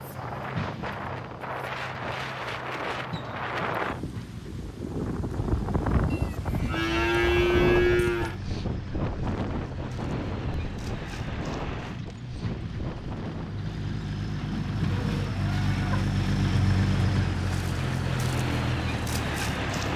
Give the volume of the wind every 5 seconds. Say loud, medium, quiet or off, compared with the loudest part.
loud, loud, medium, off.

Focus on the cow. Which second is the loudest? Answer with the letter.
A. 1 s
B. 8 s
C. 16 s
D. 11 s
B.